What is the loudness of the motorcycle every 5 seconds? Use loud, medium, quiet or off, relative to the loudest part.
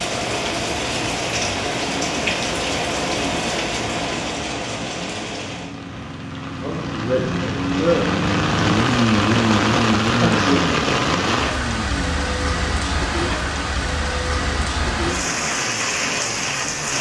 quiet, loud, medium, quiet.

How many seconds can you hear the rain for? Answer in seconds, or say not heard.
17 s.